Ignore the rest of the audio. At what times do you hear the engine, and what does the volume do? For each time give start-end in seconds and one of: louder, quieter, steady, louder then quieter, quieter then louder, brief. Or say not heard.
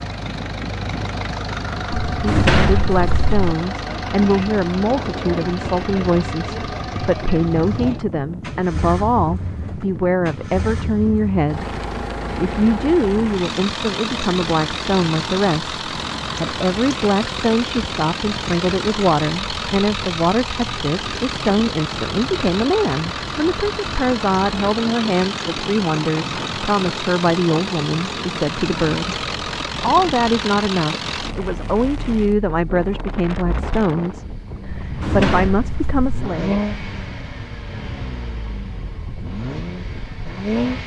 0.0-40.8 steady.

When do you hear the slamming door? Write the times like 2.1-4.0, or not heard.
1.9-3.3, 34.6-36.3.